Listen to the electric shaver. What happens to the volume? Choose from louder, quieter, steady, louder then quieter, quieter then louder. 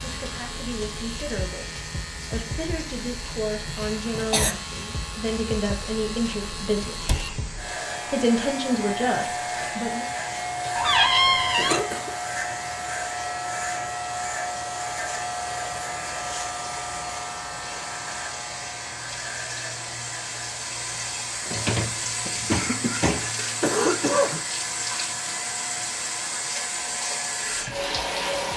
louder then quieter.